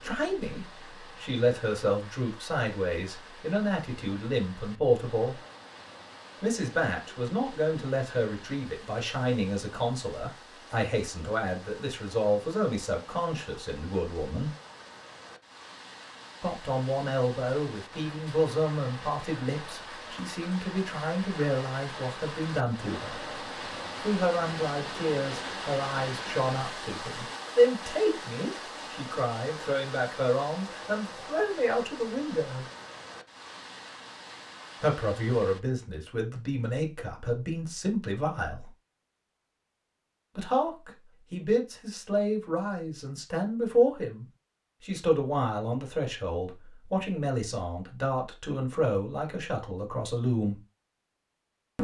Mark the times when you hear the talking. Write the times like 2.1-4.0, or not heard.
0.0-5.4, 6.4-14.5, 16.4-23.2, 24.0-32.6, 34.8-38.7, 40.4-50.6.